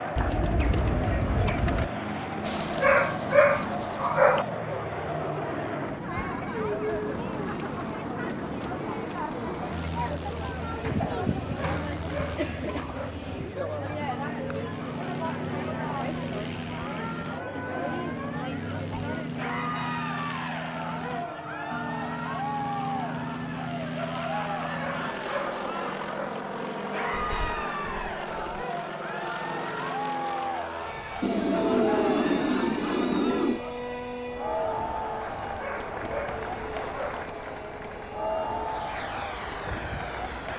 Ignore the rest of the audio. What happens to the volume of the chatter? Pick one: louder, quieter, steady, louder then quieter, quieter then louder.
steady.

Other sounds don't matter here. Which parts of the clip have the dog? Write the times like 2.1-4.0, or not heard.
2.5-4.5, 11.2-13.2, 24.6-26.4, 35.2-37.2.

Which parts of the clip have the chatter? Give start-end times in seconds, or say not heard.
0.0-40.5.